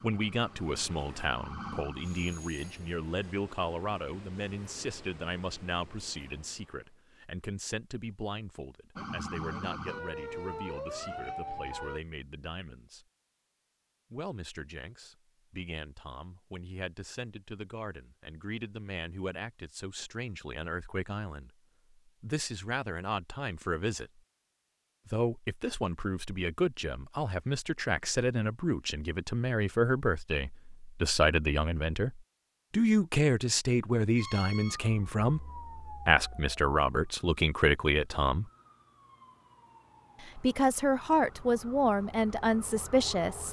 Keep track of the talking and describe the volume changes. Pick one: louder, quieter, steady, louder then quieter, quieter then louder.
quieter then louder.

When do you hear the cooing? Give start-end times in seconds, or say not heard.
not heard.